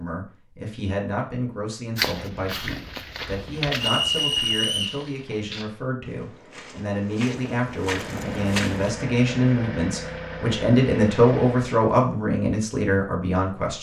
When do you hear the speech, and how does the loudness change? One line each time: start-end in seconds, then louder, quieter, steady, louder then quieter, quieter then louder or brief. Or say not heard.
0.0-13.7 louder.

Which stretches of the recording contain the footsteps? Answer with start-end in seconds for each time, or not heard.
1.9-8.9.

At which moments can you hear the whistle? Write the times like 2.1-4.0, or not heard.
3.8-5.0.